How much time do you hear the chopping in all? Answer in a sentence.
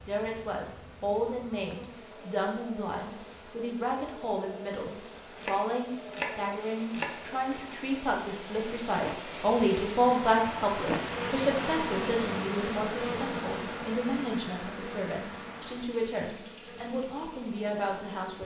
The chopping can be heard for 2 seconds in total.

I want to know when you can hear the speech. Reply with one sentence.
You can hear the speech from 0.1 to 18.4 s.